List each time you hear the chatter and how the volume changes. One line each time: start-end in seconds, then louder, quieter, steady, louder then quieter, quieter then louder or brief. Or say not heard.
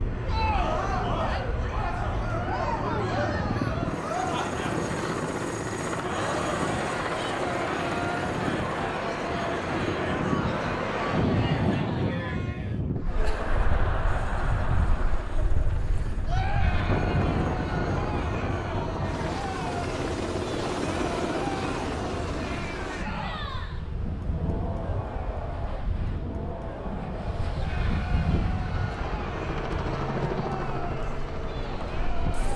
0.1-32.5 quieter.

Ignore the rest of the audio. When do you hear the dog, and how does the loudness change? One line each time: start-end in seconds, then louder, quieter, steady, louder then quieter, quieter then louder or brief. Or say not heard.
not heard.